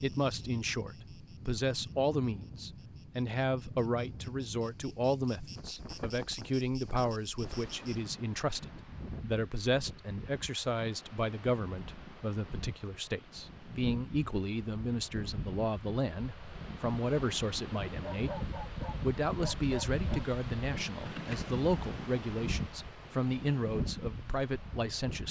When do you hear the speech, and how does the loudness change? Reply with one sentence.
You can hear the speech from 0.0 to 25.2 s, at a steady volume.